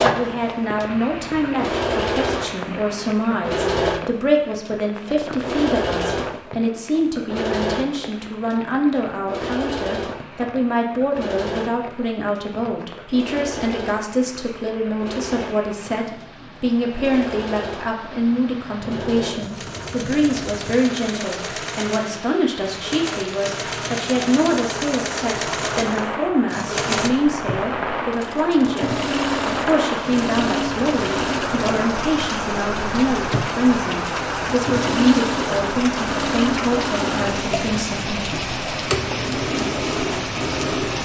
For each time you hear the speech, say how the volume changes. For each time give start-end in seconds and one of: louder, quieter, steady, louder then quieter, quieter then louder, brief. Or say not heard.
0.0-38.4 steady.